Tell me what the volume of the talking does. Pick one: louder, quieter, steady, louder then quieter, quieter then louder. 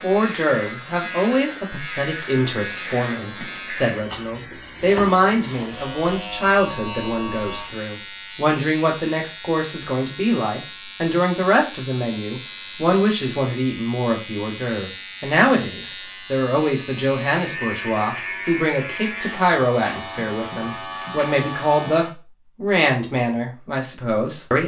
steady.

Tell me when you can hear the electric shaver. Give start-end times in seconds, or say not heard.
0.0-22.1.